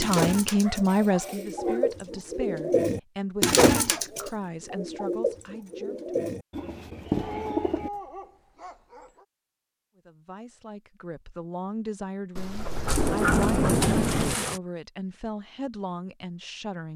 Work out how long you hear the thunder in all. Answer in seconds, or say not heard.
2 s.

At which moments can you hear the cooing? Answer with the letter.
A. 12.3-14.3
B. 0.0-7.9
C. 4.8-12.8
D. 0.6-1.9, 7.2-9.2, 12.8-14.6
B.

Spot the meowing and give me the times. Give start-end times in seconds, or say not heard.
not heard.